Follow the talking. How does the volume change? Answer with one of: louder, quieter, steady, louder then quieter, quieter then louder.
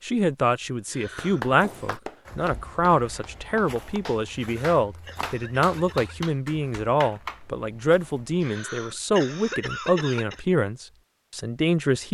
steady.